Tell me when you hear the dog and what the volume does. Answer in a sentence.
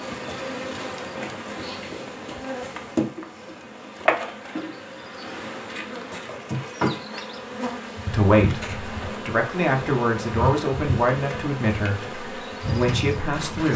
The dog can't be heard in this clip.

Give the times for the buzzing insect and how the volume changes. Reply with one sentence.
The buzzing insect can be heard from 0.0 to 13.7 s, at a steady volume.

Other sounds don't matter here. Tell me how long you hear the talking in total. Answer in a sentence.
The talking can be heard for 6 seconds in total.